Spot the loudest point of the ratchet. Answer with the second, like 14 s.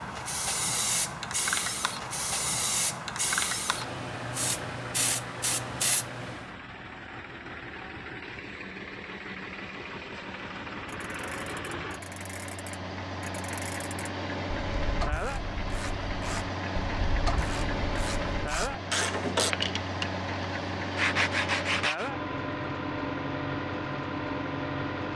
19 s.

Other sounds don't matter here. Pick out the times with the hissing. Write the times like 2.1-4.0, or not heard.
0.0-6.5.